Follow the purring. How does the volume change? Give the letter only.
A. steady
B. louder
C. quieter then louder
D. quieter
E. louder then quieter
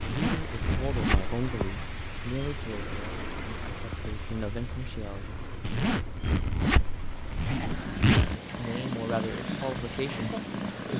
B.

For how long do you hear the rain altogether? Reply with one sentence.
The rain can be heard for 11 seconds in total.